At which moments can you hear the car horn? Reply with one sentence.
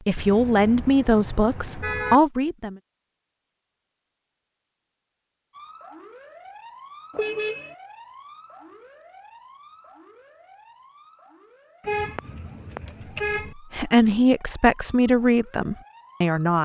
The car horn can be heard from 0.1 to 2.2 s, from 7.1 to 7.8 s and from 11.8 to 13.6 s.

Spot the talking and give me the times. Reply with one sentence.
The talking can be heard from 0.1 to 2.8 s and from 13.6 to 16.6 s.